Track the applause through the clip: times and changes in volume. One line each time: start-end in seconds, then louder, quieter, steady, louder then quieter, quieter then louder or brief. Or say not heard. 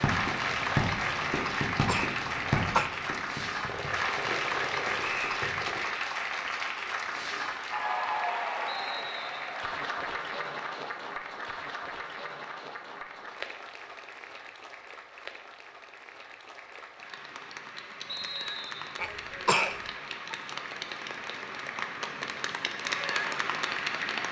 0.0-24.2 quieter then louder.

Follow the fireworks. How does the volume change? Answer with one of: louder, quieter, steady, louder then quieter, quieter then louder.
quieter.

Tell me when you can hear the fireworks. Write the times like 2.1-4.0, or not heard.
0.0-5.9.